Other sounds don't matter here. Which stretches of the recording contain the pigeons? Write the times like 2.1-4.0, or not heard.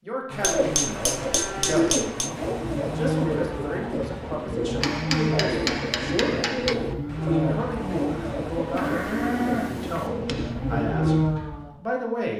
0.3-11.2.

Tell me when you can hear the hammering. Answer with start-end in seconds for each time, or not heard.
0.4-2.4, 4.8-6.8, 8.6-10.6.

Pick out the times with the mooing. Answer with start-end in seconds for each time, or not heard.
1.1-11.8.